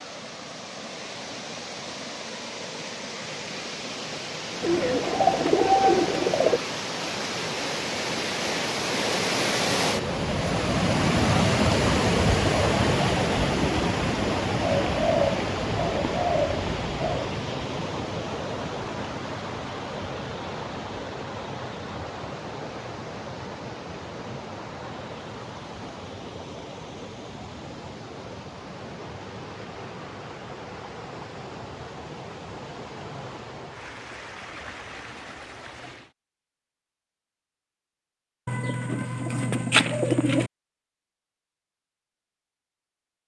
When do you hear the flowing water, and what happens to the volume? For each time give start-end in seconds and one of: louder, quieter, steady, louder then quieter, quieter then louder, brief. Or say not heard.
0.0-36.1 louder then quieter.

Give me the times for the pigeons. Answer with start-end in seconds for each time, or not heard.
4.6-6.6, 14.6-17.4, 38.5-40.5.